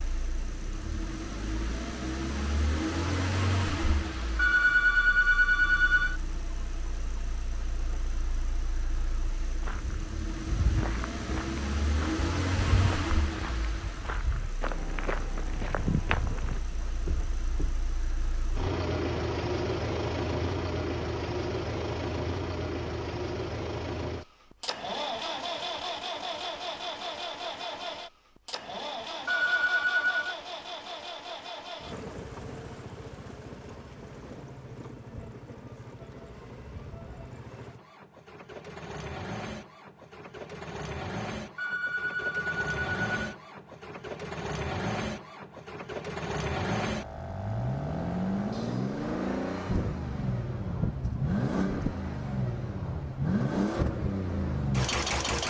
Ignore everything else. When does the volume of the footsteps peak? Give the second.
16 s.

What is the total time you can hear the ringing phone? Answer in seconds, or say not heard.
5 s.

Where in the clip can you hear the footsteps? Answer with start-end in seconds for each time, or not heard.
9.6-17.8.